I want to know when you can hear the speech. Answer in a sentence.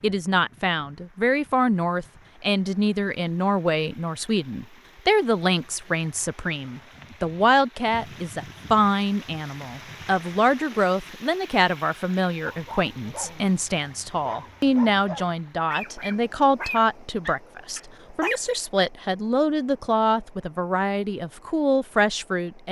The speech can be heard from 0.0 to 22.6 s.